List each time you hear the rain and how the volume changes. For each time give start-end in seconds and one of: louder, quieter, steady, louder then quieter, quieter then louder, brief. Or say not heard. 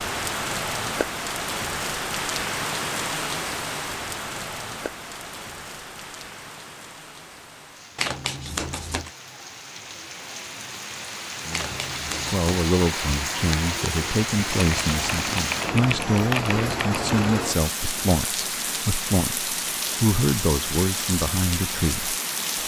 0.0-22.6 quieter then louder.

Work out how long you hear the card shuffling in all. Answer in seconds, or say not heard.
2 s.